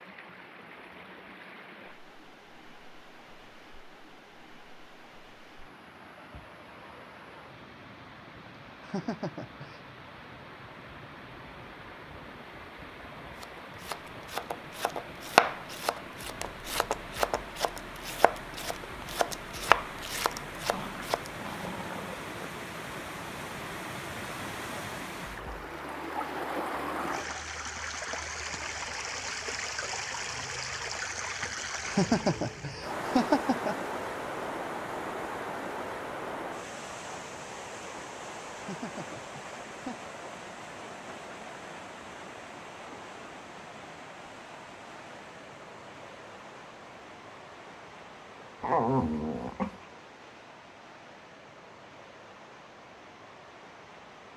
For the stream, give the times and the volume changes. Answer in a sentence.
The stream can be heard from 0.0 to 54.3 s, getting louder then quieter.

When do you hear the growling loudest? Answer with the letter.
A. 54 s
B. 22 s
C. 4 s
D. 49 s
D.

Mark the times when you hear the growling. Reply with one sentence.
You can hear the growling from 20.7 to 22.5 s and from 48.6 to 49.9 s.